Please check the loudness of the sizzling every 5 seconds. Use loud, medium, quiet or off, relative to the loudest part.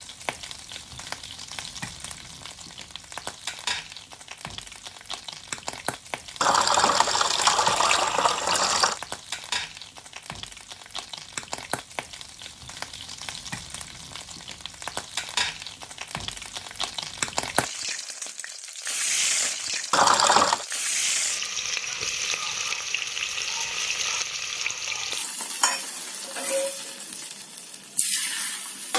medium, medium, medium, loud, loud, loud.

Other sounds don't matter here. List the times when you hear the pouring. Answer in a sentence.
You can hear the pouring from 6.4 to 9.0 s and from 19.9 to 20.6 s.